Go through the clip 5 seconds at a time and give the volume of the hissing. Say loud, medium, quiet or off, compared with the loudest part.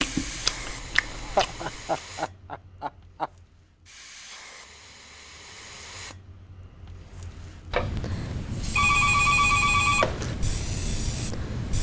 medium, loud, loud.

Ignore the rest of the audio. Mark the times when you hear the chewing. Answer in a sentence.
You can hear the chewing from 0.0 to 2.0 s.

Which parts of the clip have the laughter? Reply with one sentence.
You can hear the laughter from 1.1 to 3.3 s.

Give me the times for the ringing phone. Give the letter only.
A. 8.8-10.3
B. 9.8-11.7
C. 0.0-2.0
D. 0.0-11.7
A.